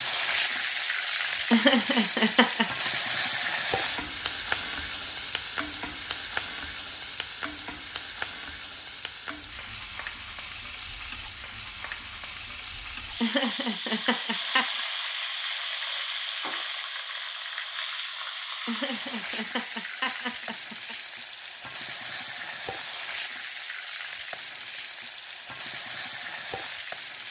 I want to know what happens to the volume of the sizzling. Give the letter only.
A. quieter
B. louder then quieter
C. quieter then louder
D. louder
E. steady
A.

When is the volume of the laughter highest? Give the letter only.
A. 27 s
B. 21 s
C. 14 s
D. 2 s
D.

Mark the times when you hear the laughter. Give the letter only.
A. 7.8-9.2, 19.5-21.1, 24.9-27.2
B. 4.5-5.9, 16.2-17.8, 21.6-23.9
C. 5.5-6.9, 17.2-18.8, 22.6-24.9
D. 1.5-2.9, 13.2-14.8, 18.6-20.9
D.